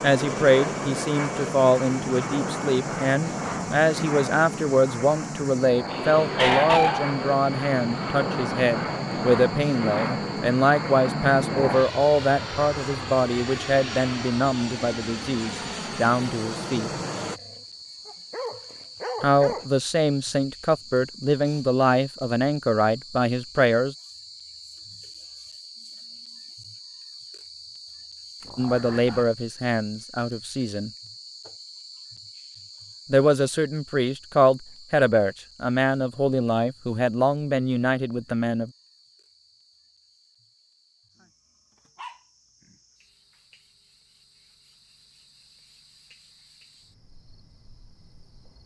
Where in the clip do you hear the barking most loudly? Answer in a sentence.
The volume of the barking peaks at 7 seconds.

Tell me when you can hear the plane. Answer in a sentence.
You can hear the plane from 0.0 to 17.4 s.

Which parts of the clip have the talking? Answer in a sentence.
The talking can be heard from 0.0 to 16.9 s, from 19.2 to 23.9 s, from 28.6 to 30.9 s and from 33.1 to 38.7 s.